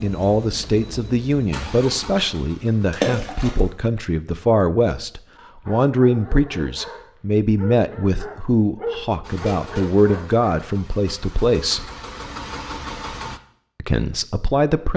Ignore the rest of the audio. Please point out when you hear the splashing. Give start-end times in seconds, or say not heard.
2.9-3.6.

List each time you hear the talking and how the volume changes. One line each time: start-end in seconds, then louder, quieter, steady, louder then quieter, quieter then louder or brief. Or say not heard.
0.0-11.9 steady
13.8-14.9 brief.